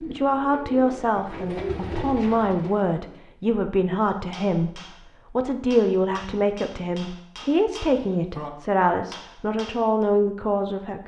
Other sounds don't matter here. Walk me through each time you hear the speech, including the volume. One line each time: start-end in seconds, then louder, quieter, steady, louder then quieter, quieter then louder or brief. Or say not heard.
0.0-11.0 steady.